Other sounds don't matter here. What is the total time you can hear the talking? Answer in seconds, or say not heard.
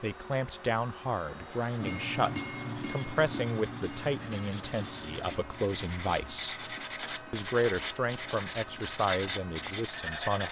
10 s.